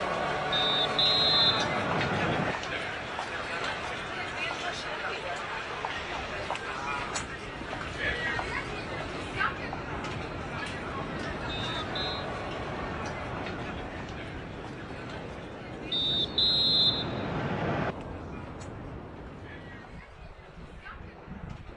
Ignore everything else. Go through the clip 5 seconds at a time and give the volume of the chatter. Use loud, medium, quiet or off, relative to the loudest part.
loud, loud, medium, quiet, quiet.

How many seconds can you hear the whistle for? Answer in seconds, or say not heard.
5 s.